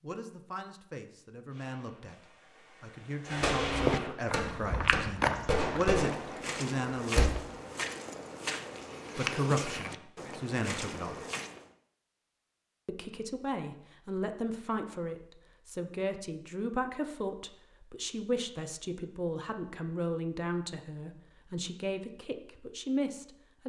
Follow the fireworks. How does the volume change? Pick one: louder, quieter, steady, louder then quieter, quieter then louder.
louder.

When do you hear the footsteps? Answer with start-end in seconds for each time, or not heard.
3.5-11.7.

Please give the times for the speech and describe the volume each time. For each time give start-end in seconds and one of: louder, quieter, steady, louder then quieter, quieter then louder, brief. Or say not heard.
0.0-7.2 louder
9.2-11.2 brief
12.8-23.6 steady.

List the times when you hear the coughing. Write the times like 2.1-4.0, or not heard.
not heard.